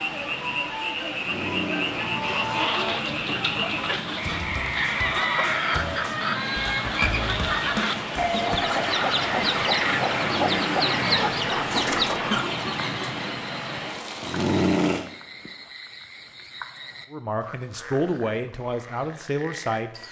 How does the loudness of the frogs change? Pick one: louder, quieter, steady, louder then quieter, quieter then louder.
quieter.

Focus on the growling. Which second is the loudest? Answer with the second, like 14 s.
15 s.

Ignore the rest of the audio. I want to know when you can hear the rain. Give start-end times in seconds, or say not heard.
0.0-15.1.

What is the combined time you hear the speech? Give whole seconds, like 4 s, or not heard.
3 s.